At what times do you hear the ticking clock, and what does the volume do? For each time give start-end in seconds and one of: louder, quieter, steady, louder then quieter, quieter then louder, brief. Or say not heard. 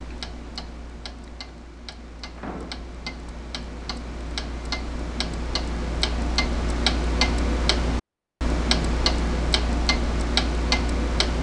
0.0-11.3 louder.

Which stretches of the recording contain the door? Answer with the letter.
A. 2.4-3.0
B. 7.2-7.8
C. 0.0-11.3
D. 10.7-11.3
A.